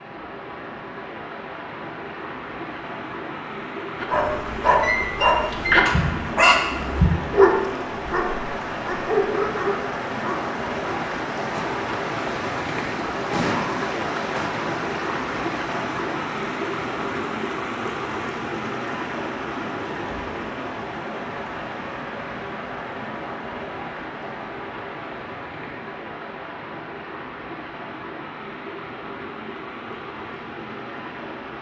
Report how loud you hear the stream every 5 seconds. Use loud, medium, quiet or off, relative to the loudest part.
medium, loud, loud, loud, medium, medium, medium.